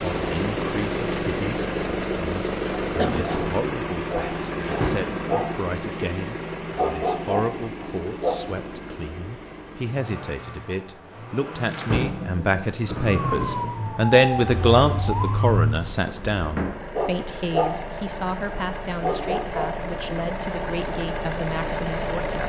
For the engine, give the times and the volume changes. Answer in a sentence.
You can hear the engine from 0.0 to 22.4 s, getting quieter then louder.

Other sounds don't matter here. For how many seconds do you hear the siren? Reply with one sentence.
The siren can be heard for 3 seconds in total.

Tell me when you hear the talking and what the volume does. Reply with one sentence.
You can hear the talking from 0.1 to 22.4 s, getting louder then quieter.